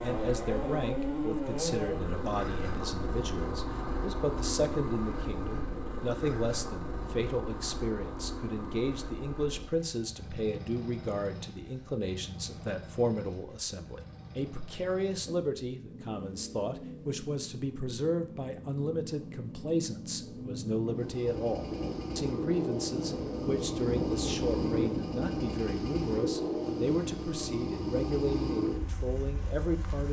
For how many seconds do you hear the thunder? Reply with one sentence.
The thunder can be heard for 5 seconds in total.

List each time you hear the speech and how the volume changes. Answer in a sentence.
The speech can be heard from 0.0 to 30.0 s, at a steady volume.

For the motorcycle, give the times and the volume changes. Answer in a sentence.
The motorcycle can be heard from 0.0 to 30.0 s, getting quieter then louder.